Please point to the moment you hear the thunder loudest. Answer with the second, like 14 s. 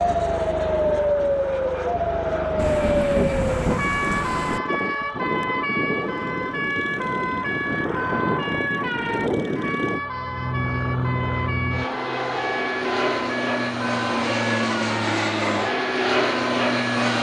3 s.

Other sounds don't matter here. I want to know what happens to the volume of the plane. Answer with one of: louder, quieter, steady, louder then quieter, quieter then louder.
louder.